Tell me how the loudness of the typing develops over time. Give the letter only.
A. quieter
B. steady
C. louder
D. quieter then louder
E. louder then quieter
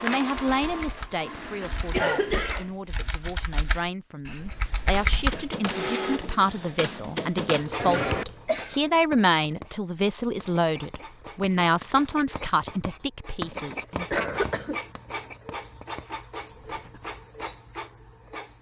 C.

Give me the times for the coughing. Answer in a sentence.
The coughing can be heard from 1.9 to 2.7 s, from 7.8 to 8.8 s and from 14.1 to 14.8 s.